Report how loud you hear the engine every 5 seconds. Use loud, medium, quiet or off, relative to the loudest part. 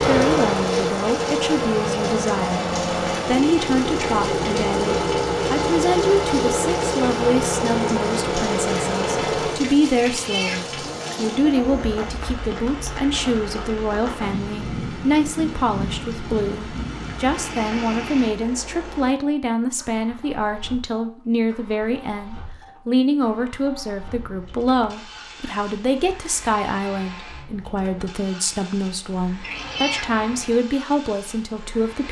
loud, loud, quiet, quiet, quiet, quiet, quiet.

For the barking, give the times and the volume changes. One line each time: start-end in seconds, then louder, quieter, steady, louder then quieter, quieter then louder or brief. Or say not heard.
not heard.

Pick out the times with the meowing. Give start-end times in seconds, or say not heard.
10.0-10.9, 29.4-30.4.